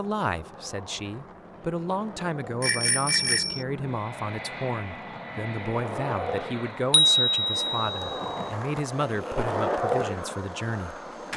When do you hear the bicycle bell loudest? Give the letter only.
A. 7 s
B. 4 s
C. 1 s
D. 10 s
A.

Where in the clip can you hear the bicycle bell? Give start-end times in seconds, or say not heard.
2.6-3.6, 6.9-8.4.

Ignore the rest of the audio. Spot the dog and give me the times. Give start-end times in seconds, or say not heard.
not heard.